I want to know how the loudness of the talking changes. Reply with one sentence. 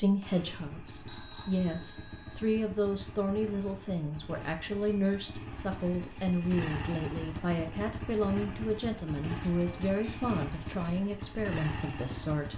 The loudness of the talking stays about the same.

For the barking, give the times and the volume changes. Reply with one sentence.
You can't hear the barking here.